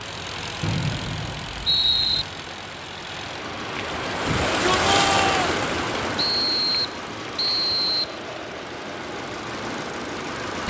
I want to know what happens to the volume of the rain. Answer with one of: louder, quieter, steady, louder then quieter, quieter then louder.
louder then quieter.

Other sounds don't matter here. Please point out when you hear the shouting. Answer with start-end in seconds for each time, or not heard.
4.2-5.6.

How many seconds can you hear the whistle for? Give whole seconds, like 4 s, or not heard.
4 s.